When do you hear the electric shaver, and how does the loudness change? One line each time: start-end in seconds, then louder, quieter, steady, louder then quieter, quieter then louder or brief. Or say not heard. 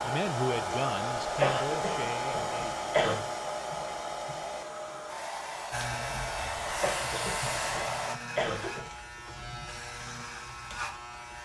5.7-11.4 steady.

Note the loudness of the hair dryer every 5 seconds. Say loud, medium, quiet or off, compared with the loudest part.
loud, loud, off.